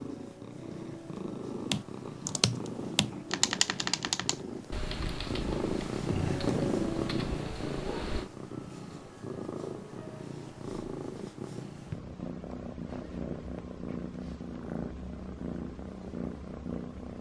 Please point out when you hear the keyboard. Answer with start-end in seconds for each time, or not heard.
1.7-8.3.